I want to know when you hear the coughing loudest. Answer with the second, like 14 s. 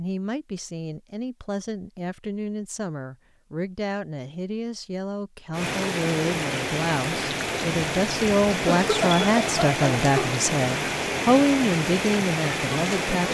9 s.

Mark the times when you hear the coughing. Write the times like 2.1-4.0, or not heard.
8.7-10.4.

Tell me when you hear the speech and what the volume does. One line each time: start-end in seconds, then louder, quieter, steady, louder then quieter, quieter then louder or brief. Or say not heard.
0.0-13.2 louder.